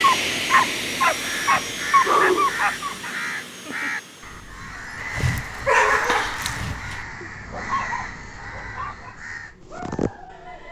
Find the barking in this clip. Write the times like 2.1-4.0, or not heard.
0.0-3.1, 4.7-10.6.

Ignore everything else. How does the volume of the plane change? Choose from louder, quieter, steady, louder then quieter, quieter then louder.
quieter.